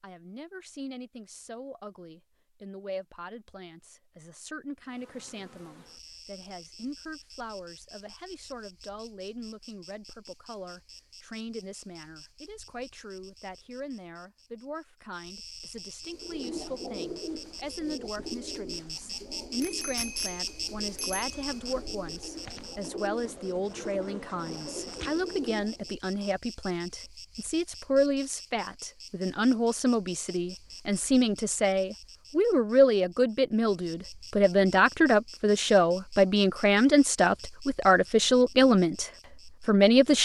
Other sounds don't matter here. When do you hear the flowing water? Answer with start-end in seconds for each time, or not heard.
not heard.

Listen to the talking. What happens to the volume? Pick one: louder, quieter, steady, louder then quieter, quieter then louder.
louder.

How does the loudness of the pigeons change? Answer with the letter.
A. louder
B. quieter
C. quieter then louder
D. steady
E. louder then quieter
C.